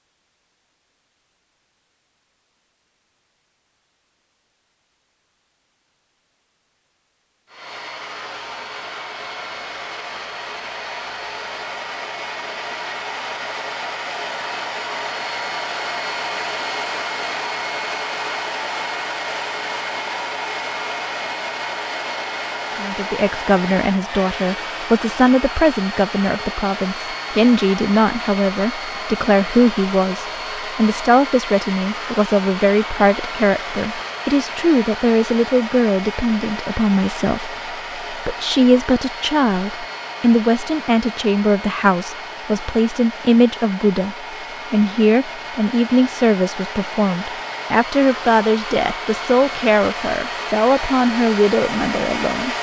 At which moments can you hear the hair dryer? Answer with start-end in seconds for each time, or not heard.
7.5-52.5.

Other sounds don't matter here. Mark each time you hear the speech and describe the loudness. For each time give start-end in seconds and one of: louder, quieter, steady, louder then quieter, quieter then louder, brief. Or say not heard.
22.8-52.5 steady.